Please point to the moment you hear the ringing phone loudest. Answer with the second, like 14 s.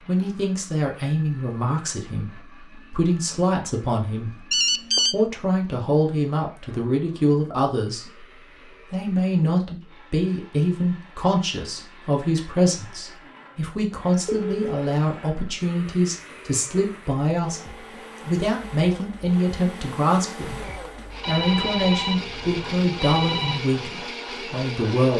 5 s.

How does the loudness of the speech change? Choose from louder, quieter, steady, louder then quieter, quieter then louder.
steady.